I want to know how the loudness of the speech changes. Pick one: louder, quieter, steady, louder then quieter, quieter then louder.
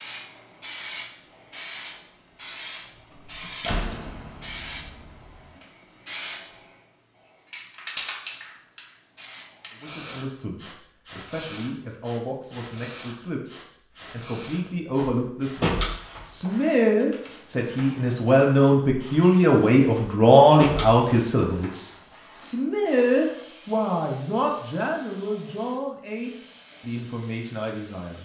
louder then quieter.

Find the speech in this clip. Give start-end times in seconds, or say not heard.
9.8-28.2.